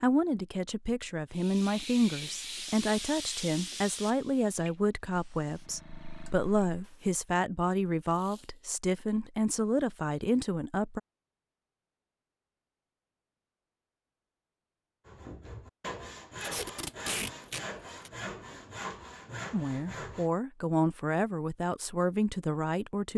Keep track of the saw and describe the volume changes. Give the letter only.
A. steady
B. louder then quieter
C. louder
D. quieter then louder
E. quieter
A.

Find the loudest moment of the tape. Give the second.
17 s.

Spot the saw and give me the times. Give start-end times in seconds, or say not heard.
15.1-20.3.